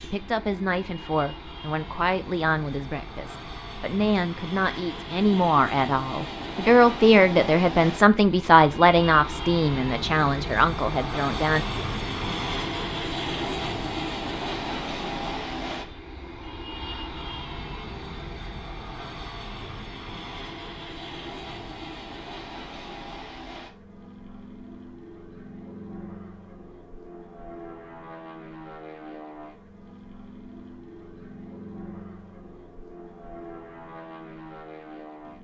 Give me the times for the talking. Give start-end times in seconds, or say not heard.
0.0-11.7.